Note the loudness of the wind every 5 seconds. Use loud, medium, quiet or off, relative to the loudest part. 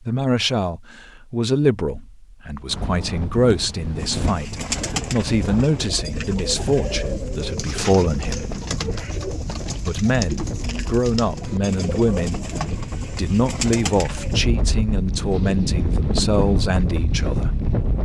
medium, medium, medium, loud.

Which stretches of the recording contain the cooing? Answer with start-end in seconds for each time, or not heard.
4.0-14.4.